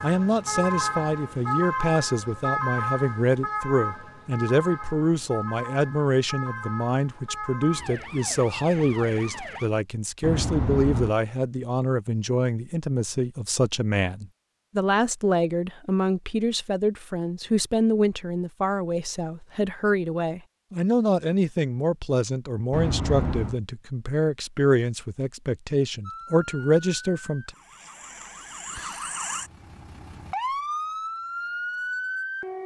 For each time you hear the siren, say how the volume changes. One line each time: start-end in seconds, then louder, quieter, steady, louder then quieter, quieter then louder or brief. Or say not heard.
0.0-9.7 quieter
26.1-32.6 louder.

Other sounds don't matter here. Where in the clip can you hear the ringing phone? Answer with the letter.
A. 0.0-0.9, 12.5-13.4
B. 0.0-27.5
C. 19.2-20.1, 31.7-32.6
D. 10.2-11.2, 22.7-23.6
D.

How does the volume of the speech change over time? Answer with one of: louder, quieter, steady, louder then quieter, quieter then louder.
steady.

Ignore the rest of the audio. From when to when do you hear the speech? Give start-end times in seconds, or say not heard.
0.0-27.5.